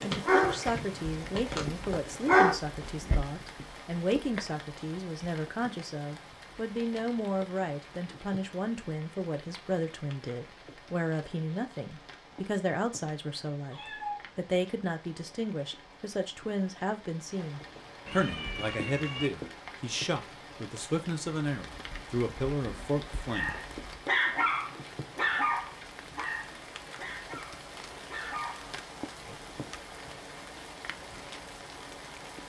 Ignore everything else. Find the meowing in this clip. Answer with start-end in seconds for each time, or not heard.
13.7-14.3, 18.1-19.3.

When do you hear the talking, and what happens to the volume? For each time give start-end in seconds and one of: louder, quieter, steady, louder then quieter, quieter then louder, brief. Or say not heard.
0.0-23.6 steady.